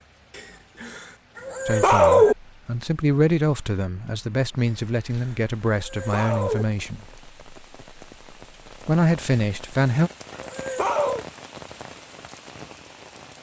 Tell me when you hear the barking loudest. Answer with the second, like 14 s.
2 s.